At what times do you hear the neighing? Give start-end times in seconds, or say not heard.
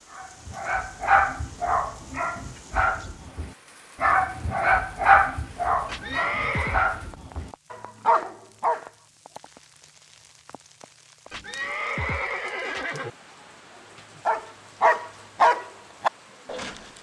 5.8-6.8, 11.3-13.1.